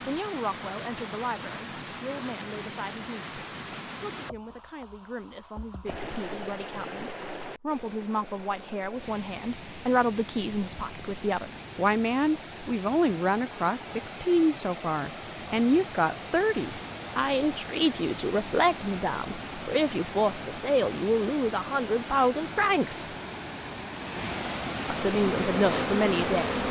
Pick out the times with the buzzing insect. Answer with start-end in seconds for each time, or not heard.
25.1-26.6.